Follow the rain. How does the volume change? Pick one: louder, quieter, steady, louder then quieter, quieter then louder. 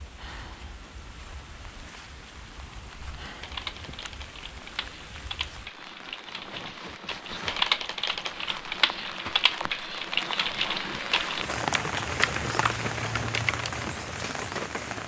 louder.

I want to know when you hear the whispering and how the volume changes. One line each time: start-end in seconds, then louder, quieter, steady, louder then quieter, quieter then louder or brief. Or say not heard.
not heard.